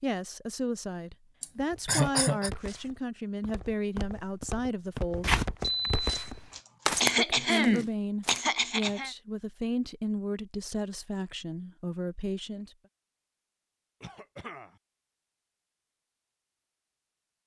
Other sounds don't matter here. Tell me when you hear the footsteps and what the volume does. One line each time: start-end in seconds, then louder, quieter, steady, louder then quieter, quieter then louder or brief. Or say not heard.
1.6-8.4 louder.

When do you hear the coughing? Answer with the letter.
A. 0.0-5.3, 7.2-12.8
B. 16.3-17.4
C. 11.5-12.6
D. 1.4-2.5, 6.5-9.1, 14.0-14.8
D.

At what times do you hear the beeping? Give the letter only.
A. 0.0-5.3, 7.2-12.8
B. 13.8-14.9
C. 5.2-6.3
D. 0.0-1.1
C.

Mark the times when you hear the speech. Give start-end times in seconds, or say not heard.
0.0-5.3, 7.2-12.8.